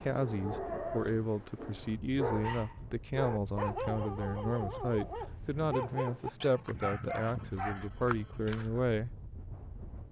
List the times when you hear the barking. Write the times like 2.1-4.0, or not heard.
0.1-8.9.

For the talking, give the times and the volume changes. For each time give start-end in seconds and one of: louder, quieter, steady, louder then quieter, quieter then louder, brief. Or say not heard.
0.0-9.1 steady.